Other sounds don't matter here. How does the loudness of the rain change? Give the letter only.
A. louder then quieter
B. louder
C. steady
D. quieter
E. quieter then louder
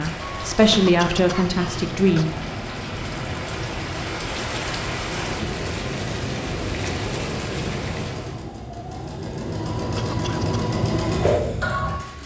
B.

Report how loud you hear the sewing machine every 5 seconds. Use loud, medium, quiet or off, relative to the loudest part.
medium, medium, loud.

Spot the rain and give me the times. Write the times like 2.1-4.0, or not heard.
0.0-8.4.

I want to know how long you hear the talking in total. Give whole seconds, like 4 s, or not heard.
2 s.